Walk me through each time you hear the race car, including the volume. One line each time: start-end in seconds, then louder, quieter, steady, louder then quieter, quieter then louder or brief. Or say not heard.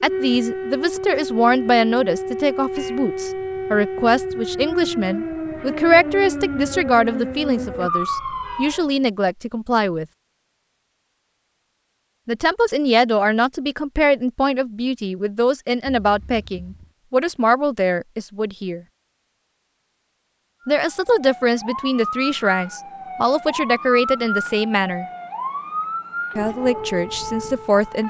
not heard.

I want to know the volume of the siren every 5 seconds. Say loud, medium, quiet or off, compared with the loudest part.
loud, loud, off, off, loud, loud.